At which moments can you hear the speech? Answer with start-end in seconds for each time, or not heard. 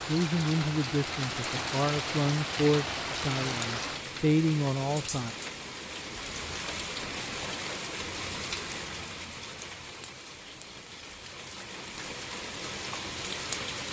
0.1-5.3.